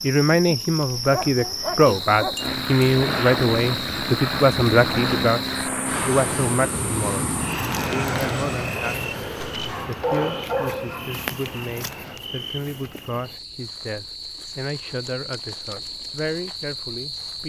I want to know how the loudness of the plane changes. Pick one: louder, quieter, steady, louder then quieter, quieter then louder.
quieter.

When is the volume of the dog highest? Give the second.
10 s.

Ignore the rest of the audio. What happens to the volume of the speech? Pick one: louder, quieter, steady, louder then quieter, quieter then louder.
quieter.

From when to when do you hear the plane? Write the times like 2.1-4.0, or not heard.
2.4-12.2.